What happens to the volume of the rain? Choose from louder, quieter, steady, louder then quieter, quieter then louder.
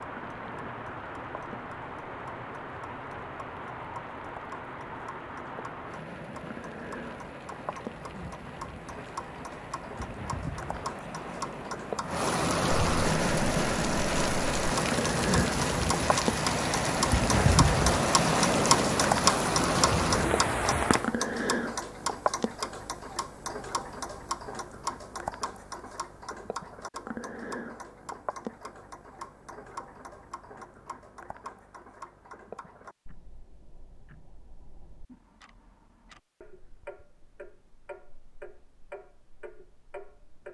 louder.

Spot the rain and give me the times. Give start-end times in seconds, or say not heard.
0.0-21.1.